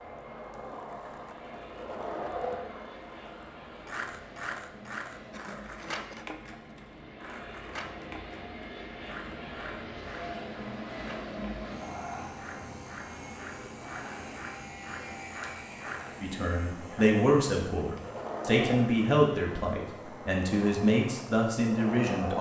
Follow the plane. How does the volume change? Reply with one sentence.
The loudness of the plane goes up, then down.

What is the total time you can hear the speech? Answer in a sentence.
You can hear the speech for 6 seconds altogether.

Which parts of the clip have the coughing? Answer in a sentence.
You can hear the coughing from 5.2 to 6.3 s.